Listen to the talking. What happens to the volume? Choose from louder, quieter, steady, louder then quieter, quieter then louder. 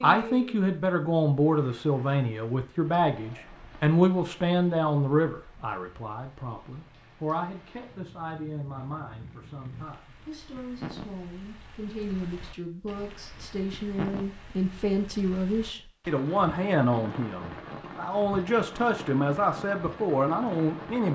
quieter then louder.